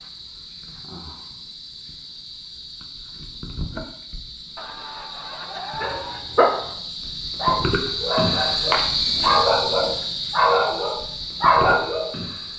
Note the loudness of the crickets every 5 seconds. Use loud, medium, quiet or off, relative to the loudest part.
quiet, loud, medium.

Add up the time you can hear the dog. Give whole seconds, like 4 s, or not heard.
6 s.